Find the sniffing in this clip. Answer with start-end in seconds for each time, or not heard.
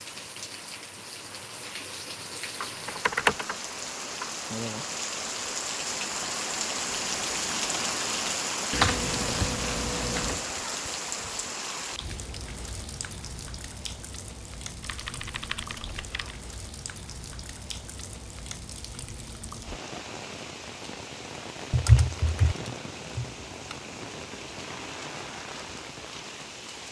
not heard.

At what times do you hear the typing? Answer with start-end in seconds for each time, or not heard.
2.6-3.5, 8.7-10.4, 14.8-16.4, 21.7-23.8.